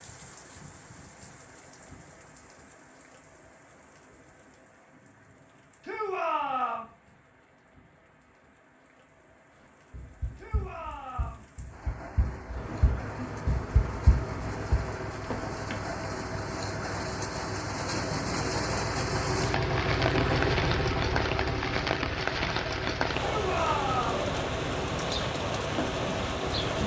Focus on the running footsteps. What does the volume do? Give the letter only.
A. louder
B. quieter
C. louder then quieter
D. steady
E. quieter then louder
C.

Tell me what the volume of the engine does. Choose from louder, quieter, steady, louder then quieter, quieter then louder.
louder then quieter.